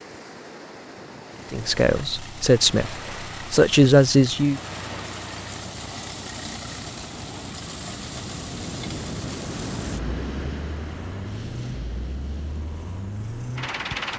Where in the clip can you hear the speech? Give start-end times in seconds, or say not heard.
1.5-4.6.